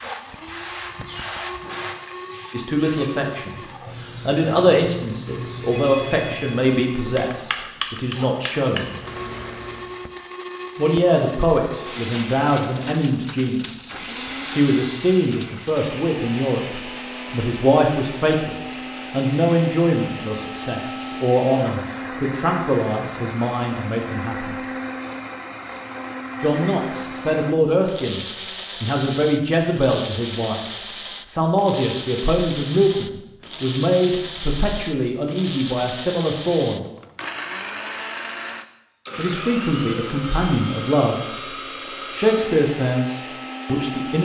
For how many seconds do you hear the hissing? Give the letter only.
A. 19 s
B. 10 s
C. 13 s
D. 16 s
B.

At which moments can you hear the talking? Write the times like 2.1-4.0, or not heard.
2.5-9.0, 10.8-24.6, 26.4-28.2, 28.8-36.9, 39.1-44.2.